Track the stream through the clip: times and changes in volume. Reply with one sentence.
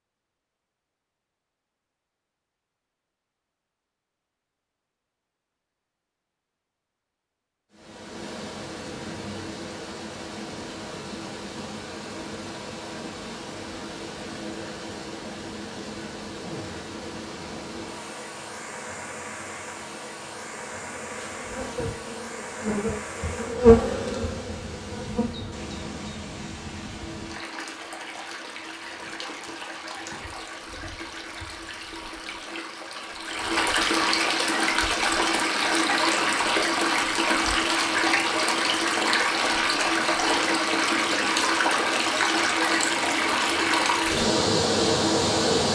You can hear the stream from 7.7 to 45.6 s, getting louder.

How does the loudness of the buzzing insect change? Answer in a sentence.
The loudness of the buzzing insect goes up, then down.